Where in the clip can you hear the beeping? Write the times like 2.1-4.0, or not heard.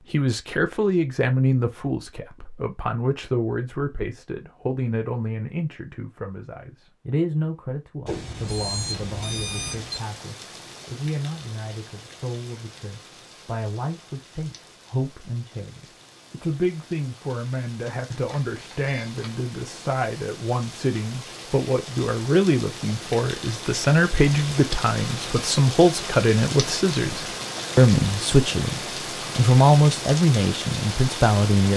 8.1-10.0, 18.1-19.4.